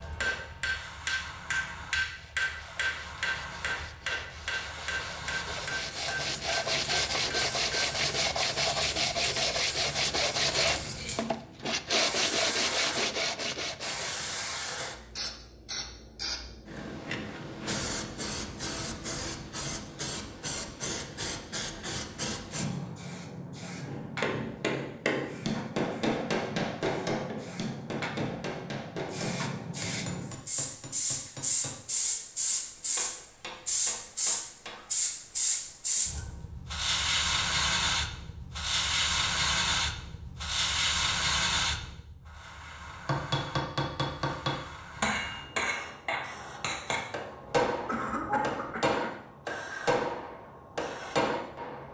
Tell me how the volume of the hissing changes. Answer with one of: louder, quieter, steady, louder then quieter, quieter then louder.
louder then quieter.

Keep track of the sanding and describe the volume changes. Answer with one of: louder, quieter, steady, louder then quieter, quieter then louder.
louder.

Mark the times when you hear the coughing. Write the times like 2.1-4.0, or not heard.
47.9-49.2.